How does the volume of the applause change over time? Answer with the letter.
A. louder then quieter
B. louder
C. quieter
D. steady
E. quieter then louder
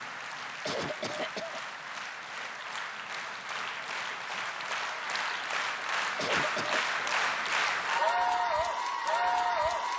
B.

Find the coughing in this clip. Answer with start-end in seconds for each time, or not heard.
0.7-1.6, 6.2-7.0.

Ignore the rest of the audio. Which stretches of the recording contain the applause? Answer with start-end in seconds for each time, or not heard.
0.0-9.9.